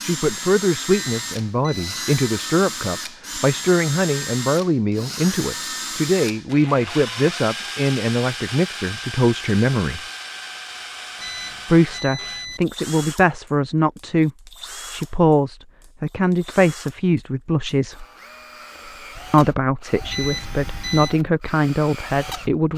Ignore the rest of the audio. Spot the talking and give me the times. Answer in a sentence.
The talking can be heard from 0.0 to 10.0 s, from 11.7 to 14.3 s, from 14.9 to 18.1 s and from 19.3 to 22.7 s.